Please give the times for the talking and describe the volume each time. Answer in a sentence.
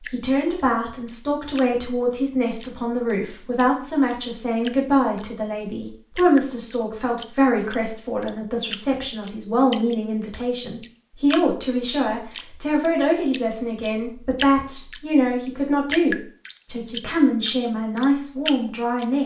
You can hear the talking from 0.0 to 19.2 s, at a steady volume.